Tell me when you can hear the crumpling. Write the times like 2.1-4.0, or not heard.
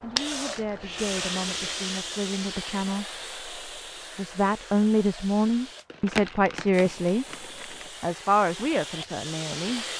5.9-7.9.